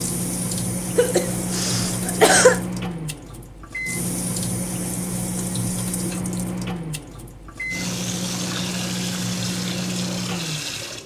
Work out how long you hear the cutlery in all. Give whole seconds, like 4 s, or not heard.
not heard.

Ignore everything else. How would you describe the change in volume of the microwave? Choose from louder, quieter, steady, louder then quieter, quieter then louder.
steady.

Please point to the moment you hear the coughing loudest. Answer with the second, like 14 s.
2 s.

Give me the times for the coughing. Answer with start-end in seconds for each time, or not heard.
0.9-2.6.